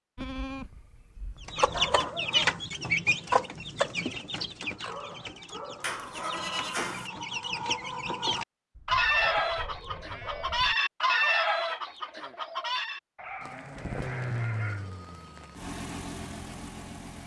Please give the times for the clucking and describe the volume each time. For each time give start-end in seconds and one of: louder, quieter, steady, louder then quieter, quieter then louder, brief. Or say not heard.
1.4-13.0 quieter then louder.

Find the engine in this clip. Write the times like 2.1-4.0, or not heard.
13.7-17.2.